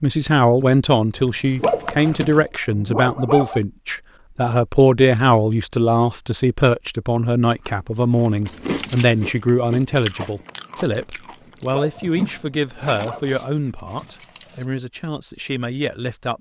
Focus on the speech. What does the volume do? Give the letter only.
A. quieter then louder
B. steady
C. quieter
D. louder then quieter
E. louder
C.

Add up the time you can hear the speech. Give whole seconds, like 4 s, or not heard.
16 s.